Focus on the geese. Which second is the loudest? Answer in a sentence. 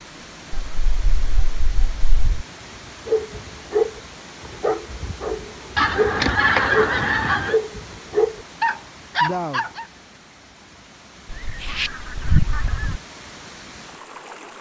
The loudest moment of the geese is at 7 seconds.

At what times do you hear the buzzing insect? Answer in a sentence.
The buzzing insect can't be heard in this clip.